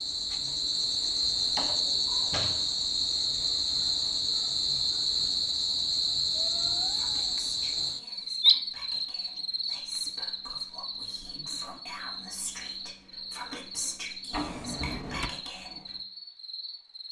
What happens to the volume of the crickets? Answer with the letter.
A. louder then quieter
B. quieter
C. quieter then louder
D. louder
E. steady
B.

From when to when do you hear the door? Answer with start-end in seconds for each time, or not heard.
1.4-2.6, 14.3-15.3.